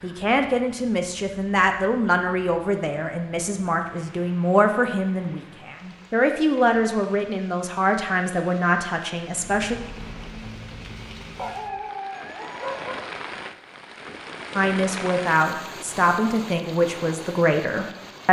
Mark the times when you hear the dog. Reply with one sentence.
The dog can be heard from 11.3 to 13.1 s.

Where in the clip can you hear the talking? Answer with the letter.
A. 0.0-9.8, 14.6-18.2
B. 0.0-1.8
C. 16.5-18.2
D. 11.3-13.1
A.